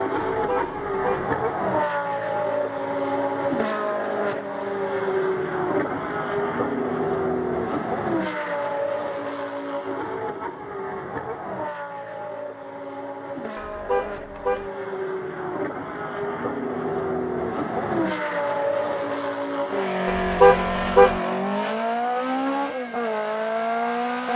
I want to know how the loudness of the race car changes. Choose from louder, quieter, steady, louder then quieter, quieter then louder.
quieter then louder.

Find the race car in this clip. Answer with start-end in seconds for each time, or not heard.
0.0-24.3.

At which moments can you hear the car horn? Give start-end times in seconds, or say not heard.
0.3-1.2, 13.6-14.7, 20.1-21.2.